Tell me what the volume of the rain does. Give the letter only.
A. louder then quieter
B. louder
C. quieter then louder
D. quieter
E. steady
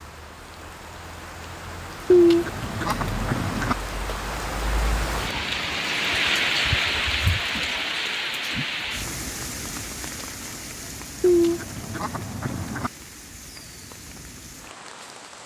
A.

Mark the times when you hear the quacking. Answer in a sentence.
The quacking can be heard from 2.1 to 3.8 s and from 11.2 to 12.9 s.